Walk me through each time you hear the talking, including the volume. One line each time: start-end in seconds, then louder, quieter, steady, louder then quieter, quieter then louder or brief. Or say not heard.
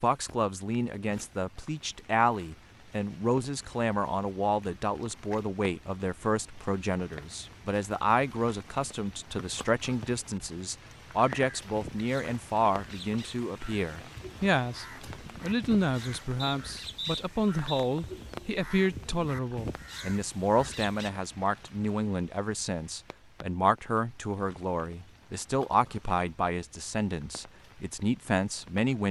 0.0-29.0 steady.